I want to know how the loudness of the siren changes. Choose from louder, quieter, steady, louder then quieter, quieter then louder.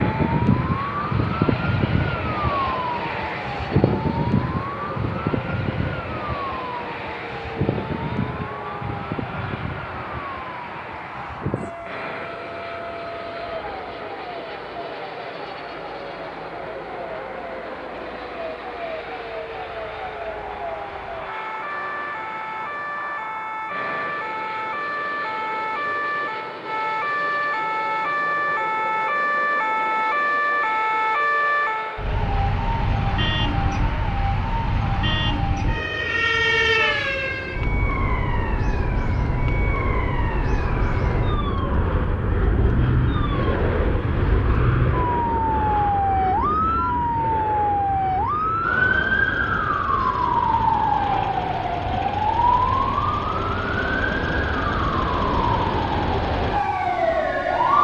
quieter then louder.